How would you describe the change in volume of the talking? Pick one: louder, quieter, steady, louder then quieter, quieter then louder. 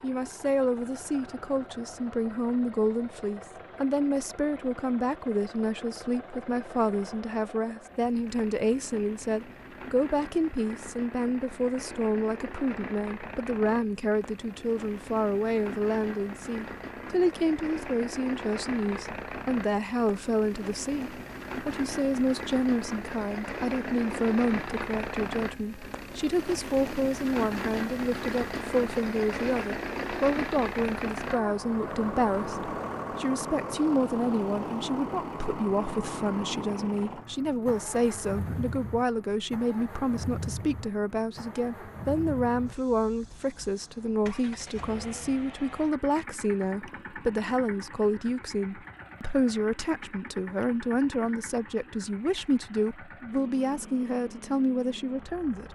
steady.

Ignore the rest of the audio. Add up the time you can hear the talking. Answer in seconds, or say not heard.
56 s.